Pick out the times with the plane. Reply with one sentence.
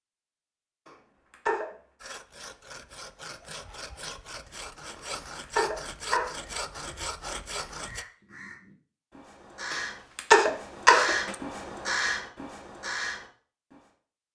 The plane can't be heard in this clip.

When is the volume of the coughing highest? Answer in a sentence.
The loudest moment of the coughing is at 10 seconds.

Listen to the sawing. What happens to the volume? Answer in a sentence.
The volume of the sawing goes up.